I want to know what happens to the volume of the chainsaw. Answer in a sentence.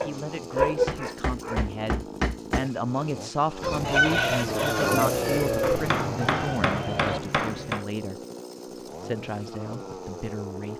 The loudness of the chainsaw goes up, then down.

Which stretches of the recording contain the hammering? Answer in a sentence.
You can hear the hammering from 0.7 to 2.6 s and from 5.6 to 7.8 s.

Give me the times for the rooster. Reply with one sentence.
The rooster can be heard from 3.6 to 7.2 s.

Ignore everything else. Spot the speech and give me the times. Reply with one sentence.
You can hear the speech from 0.0 to 8.2 s and from 9.0 to 10.7 s.